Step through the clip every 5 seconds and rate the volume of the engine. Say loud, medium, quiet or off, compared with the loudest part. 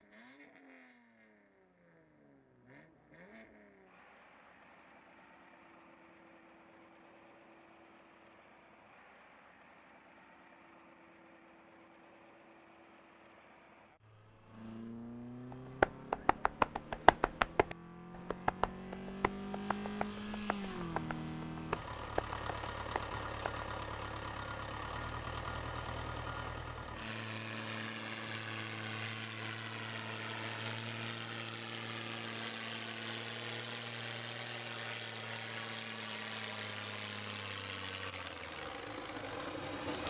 quiet, quiet, quiet, medium, loud, loud, loud, loud.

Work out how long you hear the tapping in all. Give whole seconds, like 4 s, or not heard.
8 s.